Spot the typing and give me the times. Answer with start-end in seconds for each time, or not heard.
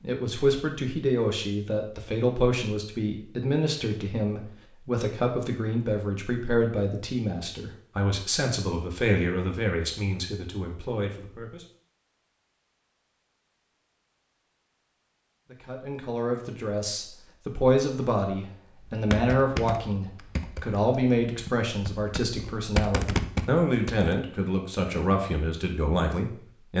18.9-24.2.